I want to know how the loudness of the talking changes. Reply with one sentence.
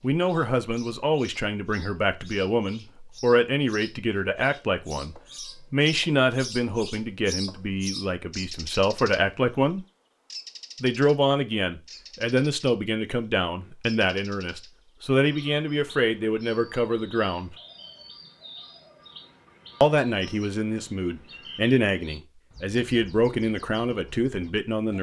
The volume of the talking stays about the same.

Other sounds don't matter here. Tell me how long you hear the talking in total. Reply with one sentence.
The talking can be heard for 22 seconds in total.